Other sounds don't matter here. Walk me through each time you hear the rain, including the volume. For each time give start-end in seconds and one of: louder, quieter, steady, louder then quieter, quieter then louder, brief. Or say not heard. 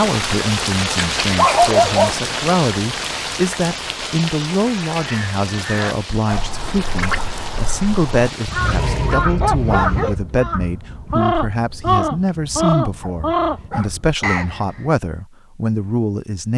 0.0-9.3 quieter.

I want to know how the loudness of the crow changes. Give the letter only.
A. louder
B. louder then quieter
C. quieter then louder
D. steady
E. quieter
A.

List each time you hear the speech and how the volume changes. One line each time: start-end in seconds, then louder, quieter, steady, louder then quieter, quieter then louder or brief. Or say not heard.
0.0-16.5 steady.